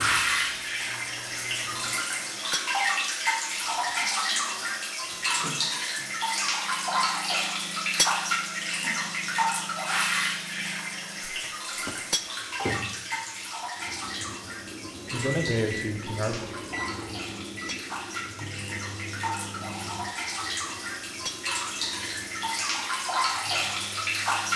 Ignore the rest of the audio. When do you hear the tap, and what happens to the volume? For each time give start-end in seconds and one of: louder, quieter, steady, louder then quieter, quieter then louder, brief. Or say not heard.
0.0-24.5 quieter then louder.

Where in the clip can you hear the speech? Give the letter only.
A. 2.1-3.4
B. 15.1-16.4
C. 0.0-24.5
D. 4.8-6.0
B.